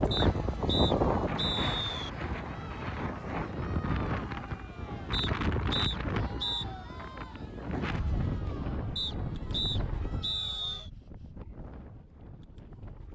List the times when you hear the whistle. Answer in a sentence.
The whistle can be heard from 0.1 to 2.1 s, from 5.1 to 6.7 s and from 8.9 to 10.9 s.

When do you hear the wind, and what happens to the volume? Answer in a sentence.
You can hear the wind from 0.0 to 13.1 s, getting quieter.